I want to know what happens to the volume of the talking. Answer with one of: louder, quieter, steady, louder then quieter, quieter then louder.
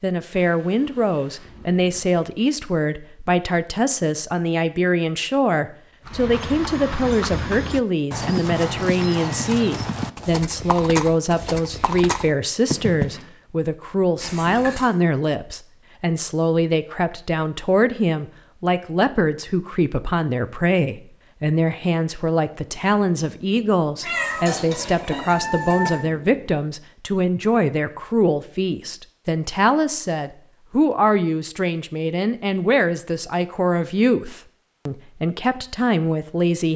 steady.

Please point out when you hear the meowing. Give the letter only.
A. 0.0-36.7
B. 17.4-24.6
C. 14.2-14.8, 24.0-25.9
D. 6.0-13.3
C.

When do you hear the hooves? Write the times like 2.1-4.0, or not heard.
6.0-13.3.